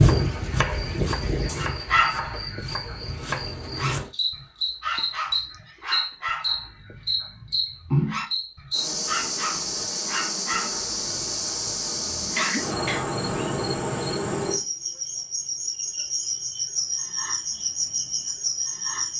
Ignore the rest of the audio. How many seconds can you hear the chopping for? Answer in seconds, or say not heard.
4 s.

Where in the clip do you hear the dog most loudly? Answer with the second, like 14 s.
2 s.